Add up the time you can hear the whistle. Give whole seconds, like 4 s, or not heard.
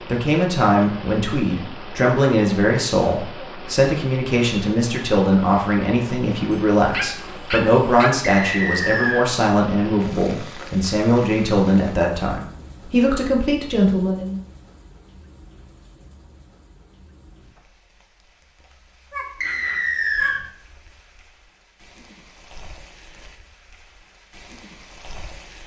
2 s.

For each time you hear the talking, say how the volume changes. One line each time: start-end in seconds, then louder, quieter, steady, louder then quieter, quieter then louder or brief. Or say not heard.
0.1-14.4 steady.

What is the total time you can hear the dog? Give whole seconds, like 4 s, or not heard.
3 s.